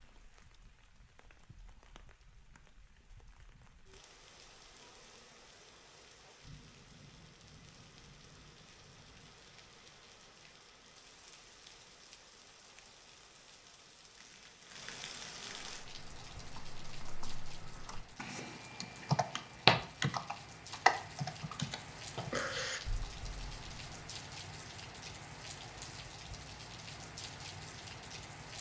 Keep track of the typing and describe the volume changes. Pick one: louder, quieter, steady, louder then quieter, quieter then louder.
louder then quieter.